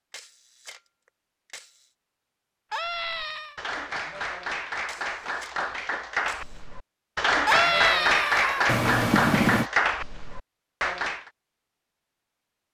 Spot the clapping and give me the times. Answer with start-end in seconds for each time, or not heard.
2.8-11.2.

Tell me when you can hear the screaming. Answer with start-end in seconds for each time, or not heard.
2.7-3.5, 7.5-8.8.